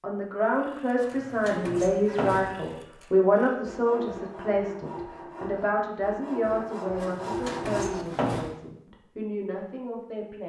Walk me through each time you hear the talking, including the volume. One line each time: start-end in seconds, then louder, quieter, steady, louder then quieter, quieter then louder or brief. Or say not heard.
0.0-10.4 quieter.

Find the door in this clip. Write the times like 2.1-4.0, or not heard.
0.9-2.8, 7.0-8.6.